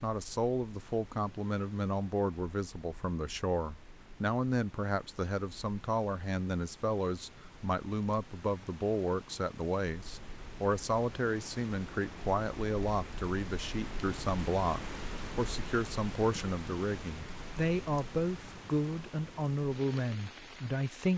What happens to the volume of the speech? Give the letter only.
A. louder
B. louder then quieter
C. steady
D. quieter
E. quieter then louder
C.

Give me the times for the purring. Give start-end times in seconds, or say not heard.
not heard.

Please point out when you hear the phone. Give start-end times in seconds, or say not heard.
not heard.